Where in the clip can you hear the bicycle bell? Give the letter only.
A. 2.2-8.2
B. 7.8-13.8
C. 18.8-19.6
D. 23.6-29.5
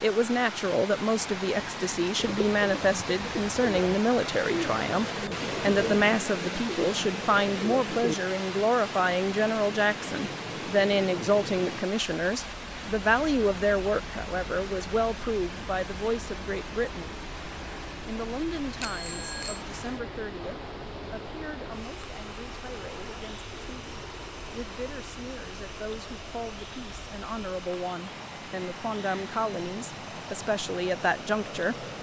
C.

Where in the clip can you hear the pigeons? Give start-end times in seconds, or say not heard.
2.2-8.2.